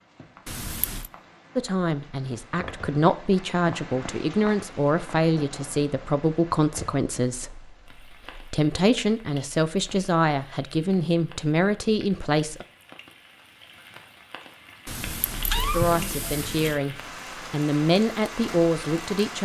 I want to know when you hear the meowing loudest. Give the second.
16 s.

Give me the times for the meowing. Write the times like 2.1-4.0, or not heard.
0.5-1.1, 14.8-16.8.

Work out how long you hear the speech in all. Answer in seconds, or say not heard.
15 s.